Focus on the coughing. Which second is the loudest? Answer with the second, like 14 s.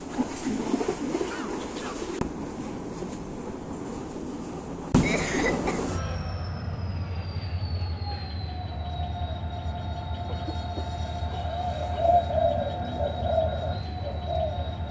5 s.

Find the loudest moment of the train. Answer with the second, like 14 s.
5 s.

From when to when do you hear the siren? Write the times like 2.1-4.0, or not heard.
not heard.